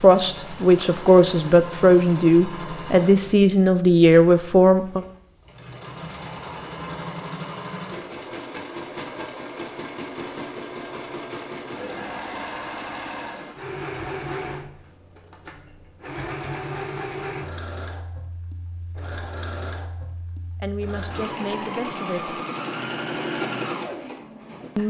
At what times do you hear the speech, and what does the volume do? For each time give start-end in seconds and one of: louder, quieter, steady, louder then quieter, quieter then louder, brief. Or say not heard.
0.0-5.0 steady
20.6-22.4 brief.